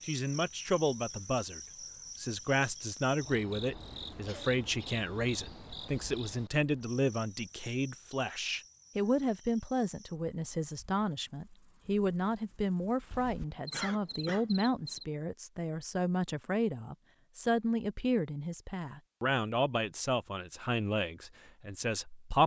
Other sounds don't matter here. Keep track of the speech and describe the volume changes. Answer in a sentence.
The volume of the speech stays about the same.